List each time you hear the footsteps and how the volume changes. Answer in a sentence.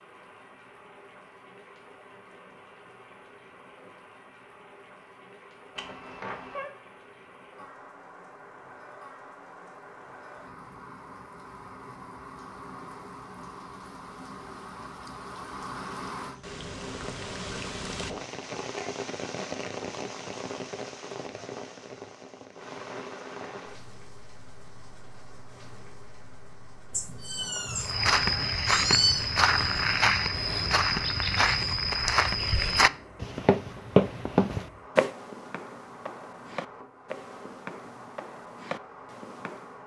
You can hear the footsteps from 27.8 to 39.8 s, getting quieter.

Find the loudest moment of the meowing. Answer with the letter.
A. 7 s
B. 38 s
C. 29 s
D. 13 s
C.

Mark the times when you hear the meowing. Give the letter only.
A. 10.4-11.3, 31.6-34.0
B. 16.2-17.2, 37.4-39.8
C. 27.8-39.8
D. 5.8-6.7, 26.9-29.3
D.